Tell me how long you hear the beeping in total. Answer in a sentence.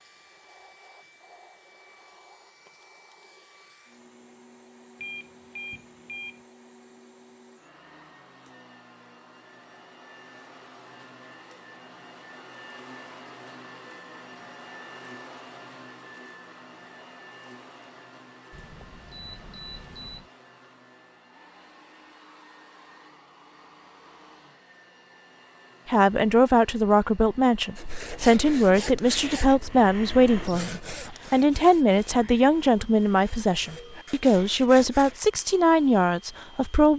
The beeping can be heard for 3 seconds in total.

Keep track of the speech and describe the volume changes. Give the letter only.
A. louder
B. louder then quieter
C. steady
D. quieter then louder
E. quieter
C.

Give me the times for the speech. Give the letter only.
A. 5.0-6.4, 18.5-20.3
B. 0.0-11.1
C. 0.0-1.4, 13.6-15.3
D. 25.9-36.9
D.